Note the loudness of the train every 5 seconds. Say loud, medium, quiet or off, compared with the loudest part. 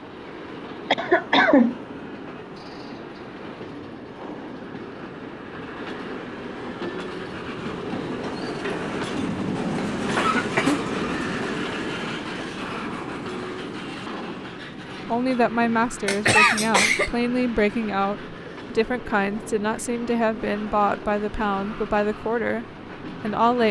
medium, loud, loud, medium, medium.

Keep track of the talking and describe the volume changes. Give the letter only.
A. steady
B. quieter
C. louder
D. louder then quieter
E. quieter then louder
A.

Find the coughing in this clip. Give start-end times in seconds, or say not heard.
0.9-1.8, 10.2-10.8, 16.1-17.1.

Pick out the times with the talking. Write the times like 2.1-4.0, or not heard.
15.1-23.6.